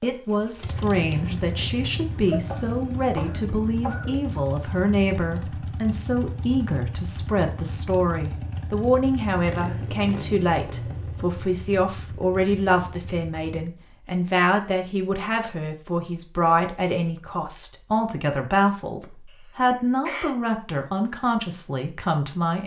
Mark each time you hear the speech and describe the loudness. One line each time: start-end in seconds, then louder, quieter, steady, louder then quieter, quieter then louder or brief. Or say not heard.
0.0-22.6 steady.